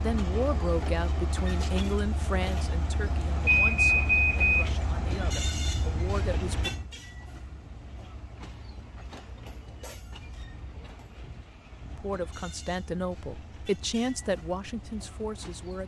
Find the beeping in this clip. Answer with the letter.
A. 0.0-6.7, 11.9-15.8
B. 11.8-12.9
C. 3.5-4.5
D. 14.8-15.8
C.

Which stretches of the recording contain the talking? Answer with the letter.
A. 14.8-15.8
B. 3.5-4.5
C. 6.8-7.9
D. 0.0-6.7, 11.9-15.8
D.